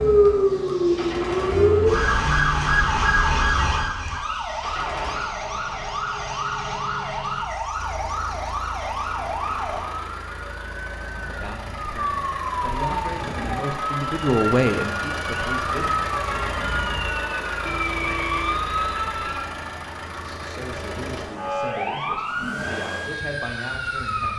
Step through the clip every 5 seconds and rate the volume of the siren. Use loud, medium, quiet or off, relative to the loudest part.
loud, medium, medium, medium, medium.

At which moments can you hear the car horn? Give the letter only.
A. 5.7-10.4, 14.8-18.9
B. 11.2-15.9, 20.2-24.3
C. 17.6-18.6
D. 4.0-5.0
C.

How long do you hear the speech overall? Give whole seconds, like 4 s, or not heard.
9 s.